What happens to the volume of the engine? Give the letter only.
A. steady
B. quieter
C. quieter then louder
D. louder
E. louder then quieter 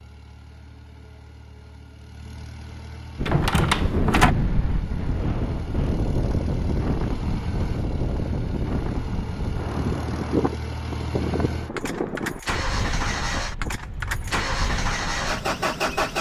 D.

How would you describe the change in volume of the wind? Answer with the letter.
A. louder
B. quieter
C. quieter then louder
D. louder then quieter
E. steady
B.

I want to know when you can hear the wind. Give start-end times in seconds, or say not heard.
3.1-16.1.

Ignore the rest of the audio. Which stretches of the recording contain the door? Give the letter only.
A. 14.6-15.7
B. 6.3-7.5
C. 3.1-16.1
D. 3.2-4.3
D.